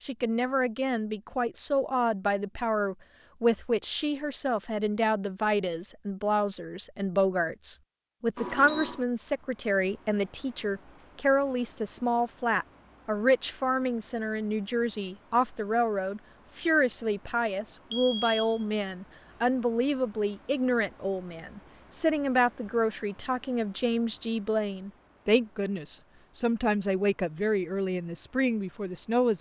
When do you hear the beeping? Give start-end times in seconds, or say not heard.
8.3-9.1, 17.9-18.6.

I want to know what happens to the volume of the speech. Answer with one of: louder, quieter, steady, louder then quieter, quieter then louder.
steady.